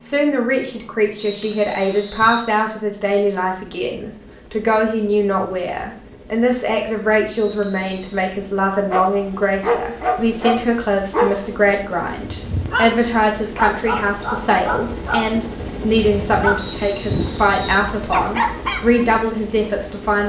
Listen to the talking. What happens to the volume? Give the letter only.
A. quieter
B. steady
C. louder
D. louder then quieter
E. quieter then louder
B.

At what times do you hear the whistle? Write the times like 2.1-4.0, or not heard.
1.1-2.5, 7.3-8.2, 16.6-17.9.